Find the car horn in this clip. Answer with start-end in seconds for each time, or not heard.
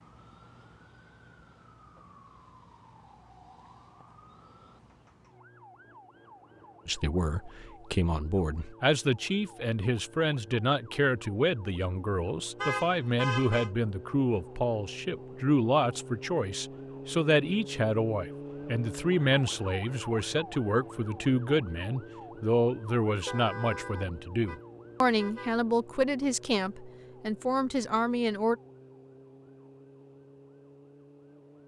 12.6-13.7, 23.1-25.6.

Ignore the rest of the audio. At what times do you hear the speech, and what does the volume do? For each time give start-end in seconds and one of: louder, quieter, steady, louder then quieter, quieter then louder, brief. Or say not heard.
6.8-28.6 steady.